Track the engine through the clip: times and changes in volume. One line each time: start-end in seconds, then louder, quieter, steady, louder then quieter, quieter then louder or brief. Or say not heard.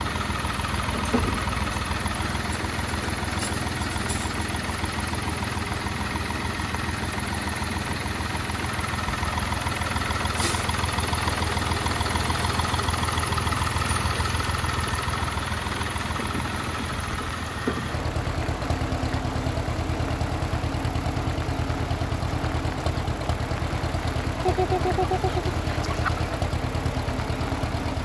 0.0-27.9 steady.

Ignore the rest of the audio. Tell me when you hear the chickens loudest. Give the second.
25 s.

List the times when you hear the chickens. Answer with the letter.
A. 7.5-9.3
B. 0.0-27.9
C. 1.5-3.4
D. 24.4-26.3
D.